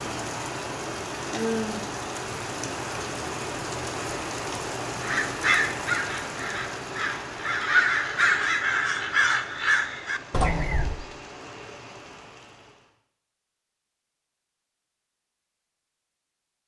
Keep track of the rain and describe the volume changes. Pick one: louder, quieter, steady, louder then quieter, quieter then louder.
quieter.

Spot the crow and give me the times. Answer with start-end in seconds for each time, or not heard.
5.0-11.1.